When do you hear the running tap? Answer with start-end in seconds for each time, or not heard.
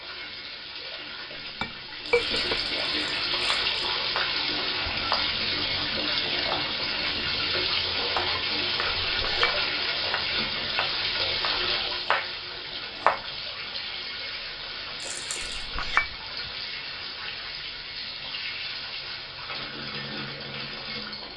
0.0-21.3.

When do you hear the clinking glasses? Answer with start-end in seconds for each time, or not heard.
1.4-2.6, 9.1-9.6, 15.4-16.1.